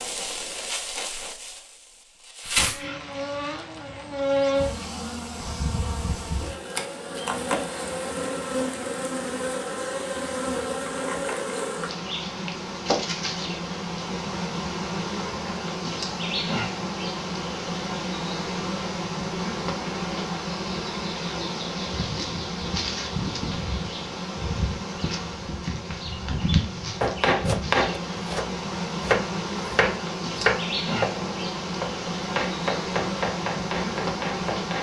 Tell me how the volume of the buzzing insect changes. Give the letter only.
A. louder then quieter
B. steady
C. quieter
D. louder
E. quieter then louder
B.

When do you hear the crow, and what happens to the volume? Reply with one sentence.
The crow can't be heard in this clip.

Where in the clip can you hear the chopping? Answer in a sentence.
The chopping can be heard from 27.0 to 34.7 s.